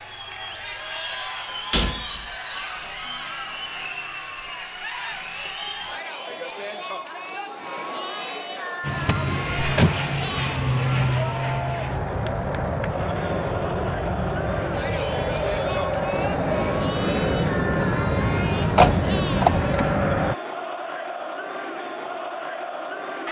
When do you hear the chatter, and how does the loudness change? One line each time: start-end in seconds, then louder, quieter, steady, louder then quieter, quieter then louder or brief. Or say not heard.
0.0-23.2 steady.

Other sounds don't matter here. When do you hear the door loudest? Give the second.
19 s.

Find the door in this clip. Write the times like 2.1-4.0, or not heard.
1.7-2.2, 9.1-10.0, 18.8-19.9.